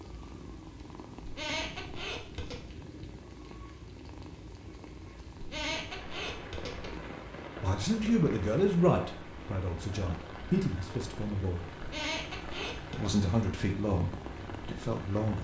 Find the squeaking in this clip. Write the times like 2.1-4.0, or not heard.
1.2-2.6, 5.4-7.0, 11.8-13.1.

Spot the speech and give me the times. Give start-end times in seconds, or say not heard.
7.6-11.7, 12.9-15.3.